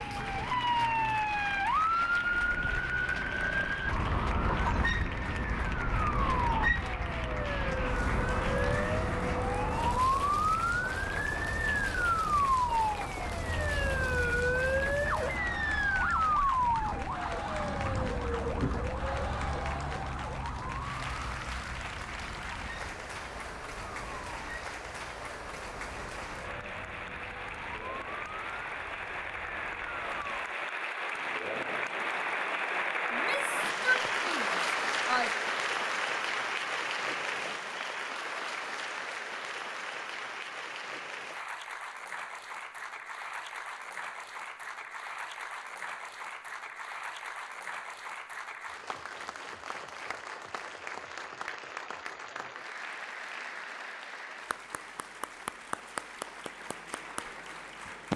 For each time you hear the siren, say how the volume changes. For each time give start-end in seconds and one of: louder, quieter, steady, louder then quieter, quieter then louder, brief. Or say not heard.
0.0-30.6 quieter.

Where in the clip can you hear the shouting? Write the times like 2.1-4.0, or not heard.
33.1-35.3.